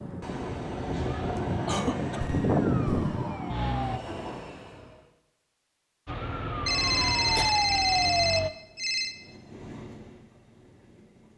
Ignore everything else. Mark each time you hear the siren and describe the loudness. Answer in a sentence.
The siren can be heard from 0.0 to 4.0 s, getting louder then quieter; and briefly from 6.0 to 8.5 s.